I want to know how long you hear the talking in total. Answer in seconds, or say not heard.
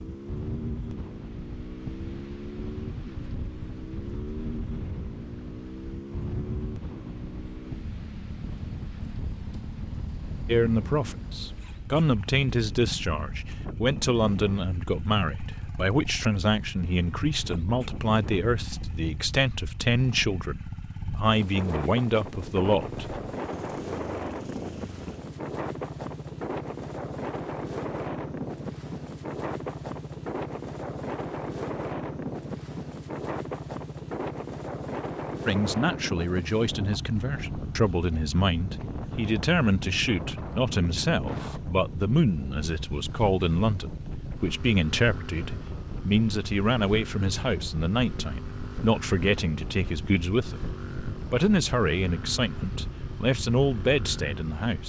32 s.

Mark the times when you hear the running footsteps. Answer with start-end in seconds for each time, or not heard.
not heard.